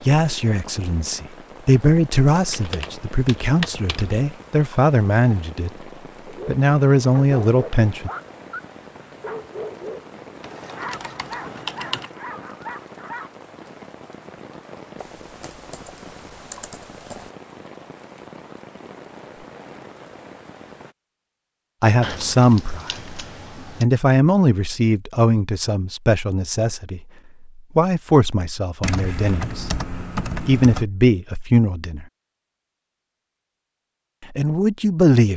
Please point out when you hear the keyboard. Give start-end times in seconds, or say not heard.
2.3-4.2, 10.4-12.2, 15.0-17.3, 22.0-23.9, 28.8-30.9.